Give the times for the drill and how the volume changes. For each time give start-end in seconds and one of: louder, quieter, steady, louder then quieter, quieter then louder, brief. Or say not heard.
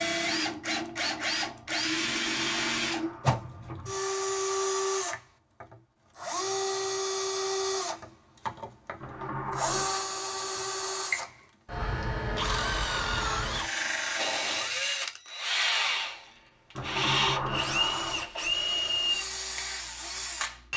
0.0-20.7 steady.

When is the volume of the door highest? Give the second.
17 s.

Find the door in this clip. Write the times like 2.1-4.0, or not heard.
2.1-3.9, 9.0-9.9, 16.8-18.2.